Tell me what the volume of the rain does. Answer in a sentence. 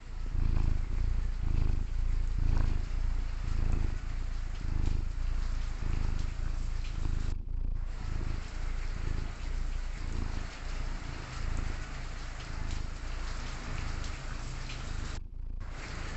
The volume of the rain goes up.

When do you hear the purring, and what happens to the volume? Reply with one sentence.
The purring can be heard from 0.0 to 16.1 s, getting quieter.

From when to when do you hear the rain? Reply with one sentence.
You can hear the rain from 0.0 to 16.1 s.